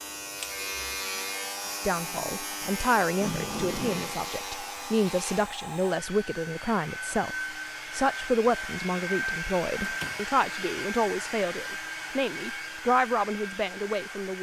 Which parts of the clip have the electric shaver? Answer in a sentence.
You can hear the electric shaver from 0.0 to 5.6 s.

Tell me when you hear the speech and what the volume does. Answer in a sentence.
The speech can be heard from 1.9 to 14.3 s, at a steady volume.